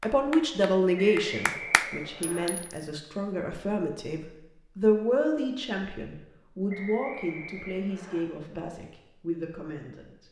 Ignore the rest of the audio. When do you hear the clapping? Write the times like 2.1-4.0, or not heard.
0.0-1.9.